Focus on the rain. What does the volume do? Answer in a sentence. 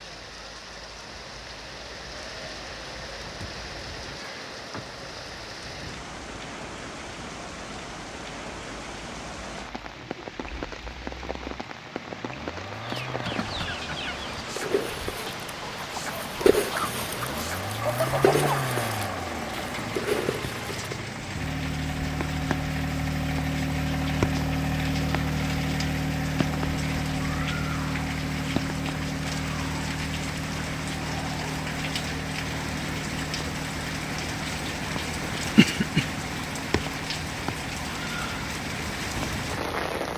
The loudness of the rain goes up.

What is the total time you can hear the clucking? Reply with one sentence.
You can hear the clucking for 8 seconds altogether.